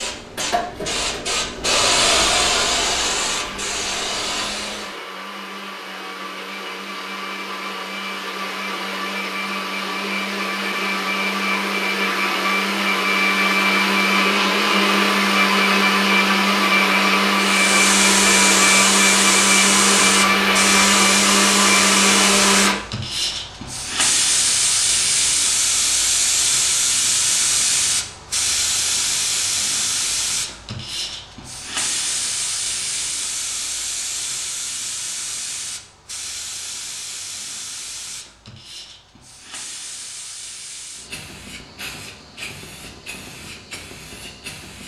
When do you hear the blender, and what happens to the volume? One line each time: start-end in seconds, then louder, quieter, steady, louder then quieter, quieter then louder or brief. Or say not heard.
0.1-22.8 louder.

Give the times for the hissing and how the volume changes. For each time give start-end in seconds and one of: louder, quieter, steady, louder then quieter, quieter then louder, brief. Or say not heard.
0.0-5.0 louder then quieter
17.4-44.8 quieter.